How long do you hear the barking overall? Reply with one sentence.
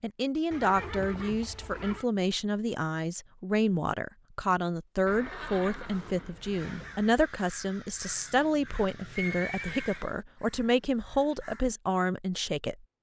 You can't hear the barking here.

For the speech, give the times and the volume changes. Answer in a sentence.
The speech can be heard from 0.0 to 12.8 s, at a steady volume.